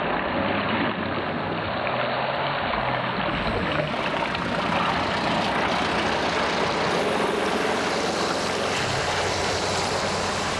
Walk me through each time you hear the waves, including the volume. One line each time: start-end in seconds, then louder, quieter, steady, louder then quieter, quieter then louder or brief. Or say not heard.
0.0-10.5 steady.